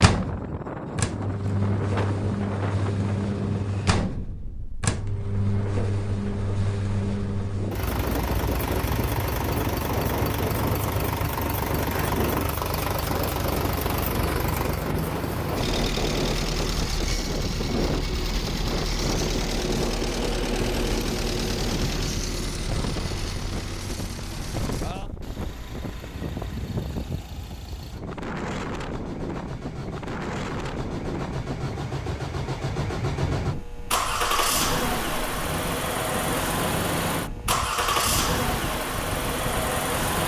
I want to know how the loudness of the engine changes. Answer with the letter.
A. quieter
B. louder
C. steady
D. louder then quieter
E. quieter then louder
E.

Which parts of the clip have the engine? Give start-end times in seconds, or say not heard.
0.0-40.2.